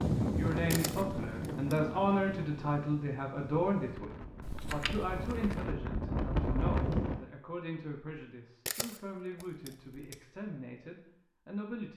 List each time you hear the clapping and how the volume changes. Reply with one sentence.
You can't hear the clapping here.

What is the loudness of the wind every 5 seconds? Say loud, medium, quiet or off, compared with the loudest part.
loud, loud, off.